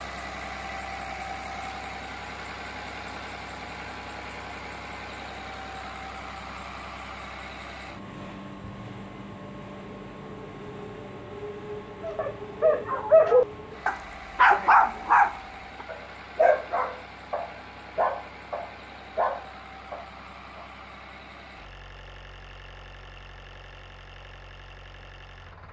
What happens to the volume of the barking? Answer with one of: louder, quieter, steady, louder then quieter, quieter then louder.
quieter.